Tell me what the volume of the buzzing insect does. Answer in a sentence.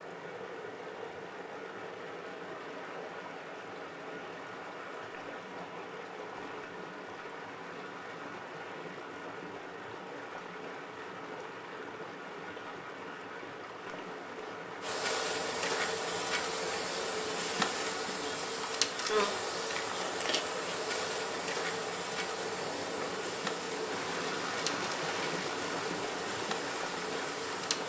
The loudness of the buzzing insect goes down.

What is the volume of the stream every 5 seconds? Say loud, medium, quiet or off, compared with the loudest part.
medium, medium, medium, medium, loud, loud.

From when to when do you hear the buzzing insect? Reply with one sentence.
The buzzing insect can be heard from 14.8 to 27.8 s.